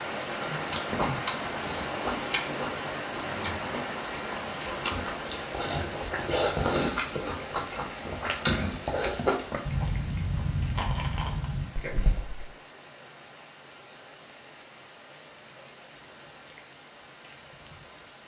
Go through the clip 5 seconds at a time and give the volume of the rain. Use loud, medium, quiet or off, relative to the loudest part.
loud, medium, quiet, quiet.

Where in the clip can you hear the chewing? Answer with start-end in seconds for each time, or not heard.
0.4-12.5.